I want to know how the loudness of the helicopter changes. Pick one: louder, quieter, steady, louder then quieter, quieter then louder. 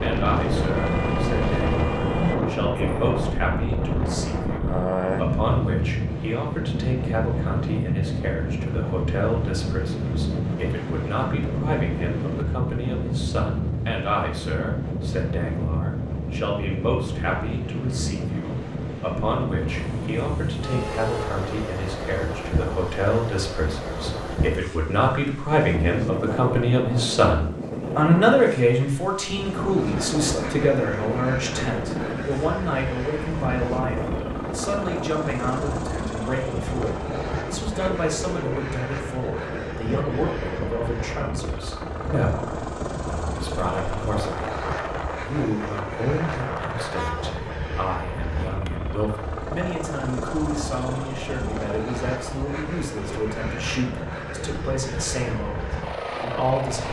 steady.